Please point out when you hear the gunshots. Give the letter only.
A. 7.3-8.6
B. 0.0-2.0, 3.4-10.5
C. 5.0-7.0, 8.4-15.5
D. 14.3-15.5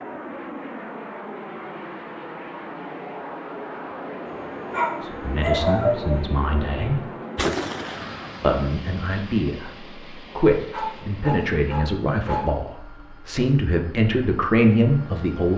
A.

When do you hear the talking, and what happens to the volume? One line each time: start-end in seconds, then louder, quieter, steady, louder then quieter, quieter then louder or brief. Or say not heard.
5.0-7.0 brief
8.4-15.5 louder.